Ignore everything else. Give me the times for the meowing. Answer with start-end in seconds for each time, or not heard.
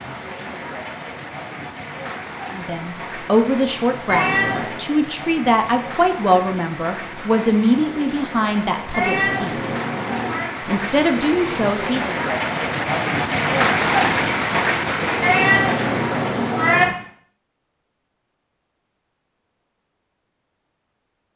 4.0-4.8, 8.9-10.5, 15.2-16.9.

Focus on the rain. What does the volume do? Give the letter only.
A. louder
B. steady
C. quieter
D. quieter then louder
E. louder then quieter
A.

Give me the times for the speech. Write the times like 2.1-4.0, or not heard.
2.5-9.7, 10.7-12.1.